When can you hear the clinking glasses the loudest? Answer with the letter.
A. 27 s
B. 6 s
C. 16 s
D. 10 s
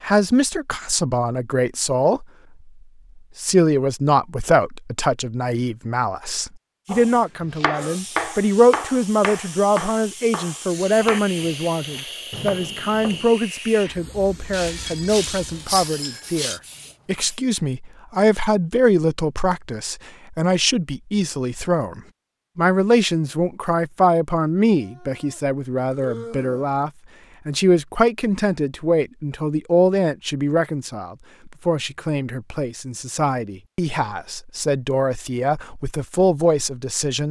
C.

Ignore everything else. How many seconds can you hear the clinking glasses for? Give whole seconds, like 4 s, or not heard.
2 s.